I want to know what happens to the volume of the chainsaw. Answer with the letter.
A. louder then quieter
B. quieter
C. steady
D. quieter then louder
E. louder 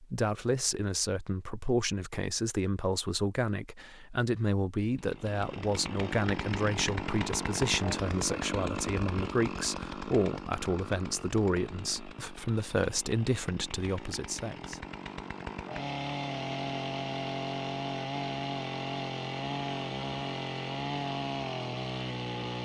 D.